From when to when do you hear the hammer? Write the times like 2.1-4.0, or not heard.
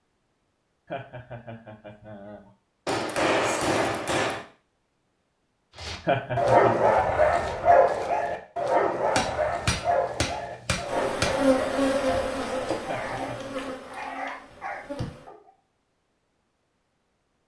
2.9-4.5, 9.2-11.5.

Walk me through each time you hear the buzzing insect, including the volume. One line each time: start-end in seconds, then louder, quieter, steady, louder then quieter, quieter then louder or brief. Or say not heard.
10.8-15.3 quieter.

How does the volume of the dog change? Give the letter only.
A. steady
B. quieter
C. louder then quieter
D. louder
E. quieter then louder
B.